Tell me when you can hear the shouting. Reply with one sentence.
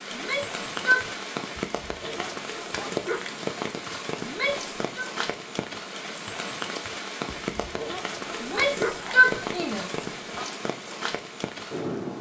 The shouting can be heard from 0.1 to 1.1 s, from 4.2 to 5.0 s and from 8.4 to 10.4 s.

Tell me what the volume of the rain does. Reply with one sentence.
The volume of the rain stays about the same.